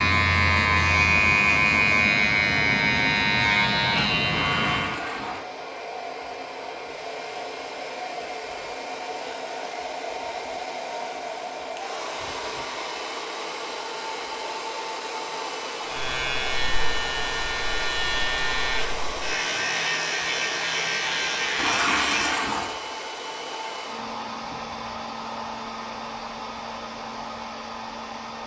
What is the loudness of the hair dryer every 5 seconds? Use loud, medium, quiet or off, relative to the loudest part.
medium, loud, loud, loud, loud, loud.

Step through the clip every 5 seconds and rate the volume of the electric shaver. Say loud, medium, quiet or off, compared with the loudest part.
loud, off, off, medium, medium, off.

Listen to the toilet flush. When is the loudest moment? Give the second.
22 s.